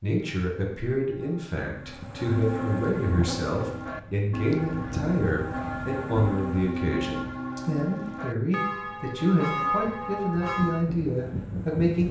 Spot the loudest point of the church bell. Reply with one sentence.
The loudest moment of the church bell is at 10 seconds.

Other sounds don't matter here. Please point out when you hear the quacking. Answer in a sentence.
You can't hear the quacking here.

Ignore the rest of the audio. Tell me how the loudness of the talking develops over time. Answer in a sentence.
The volume of the talking stays about the same.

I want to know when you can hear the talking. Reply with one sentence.
The talking can be heard from 0.0 to 12.0 s.